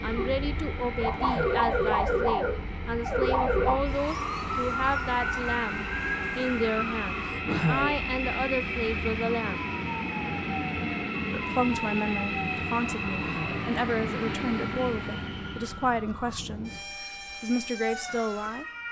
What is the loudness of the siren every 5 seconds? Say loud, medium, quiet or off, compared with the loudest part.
loud, medium, medium, medium.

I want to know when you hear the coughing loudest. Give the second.
8 s.